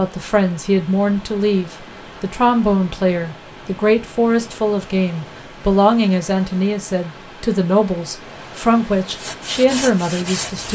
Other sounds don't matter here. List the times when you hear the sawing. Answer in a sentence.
The sawing can be heard from 9.2 to 10.7 s.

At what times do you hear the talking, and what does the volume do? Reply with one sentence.
The talking can be heard from 0.0 to 10.7 s, at a steady volume.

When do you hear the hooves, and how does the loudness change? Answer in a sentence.
You can't hear the hooves here.